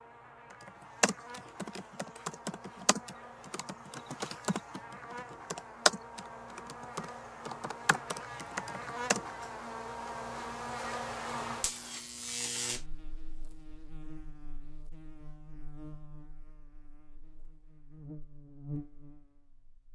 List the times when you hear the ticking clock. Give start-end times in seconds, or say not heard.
not heard.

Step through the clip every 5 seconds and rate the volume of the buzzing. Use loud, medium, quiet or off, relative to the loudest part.
medium, loud, loud, medium.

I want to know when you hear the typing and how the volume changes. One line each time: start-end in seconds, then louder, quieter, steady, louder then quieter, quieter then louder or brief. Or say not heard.
0.7-9.2 louder then quieter.